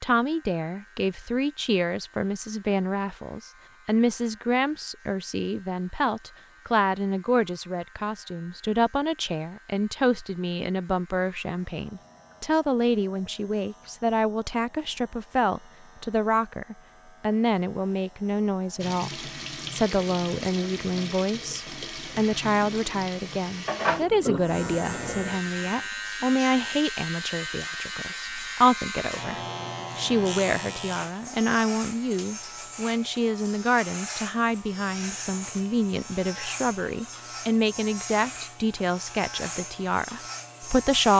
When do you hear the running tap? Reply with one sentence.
You can hear the running tap from 18.8 to 25.9 s.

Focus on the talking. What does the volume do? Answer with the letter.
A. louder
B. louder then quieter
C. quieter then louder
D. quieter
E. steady
E.